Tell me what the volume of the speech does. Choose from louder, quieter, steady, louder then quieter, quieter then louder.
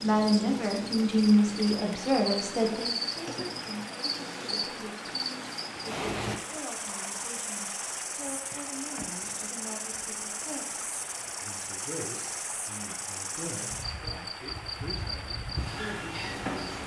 quieter.